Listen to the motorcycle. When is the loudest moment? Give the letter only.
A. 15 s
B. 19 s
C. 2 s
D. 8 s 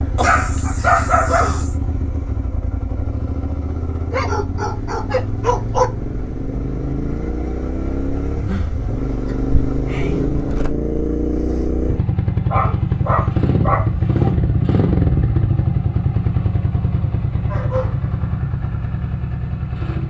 A.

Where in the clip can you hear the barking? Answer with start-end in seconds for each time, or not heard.
0.1-1.7, 4.1-5.8, 8.3-10.3, 12.4-14.2, 17.4-17.9.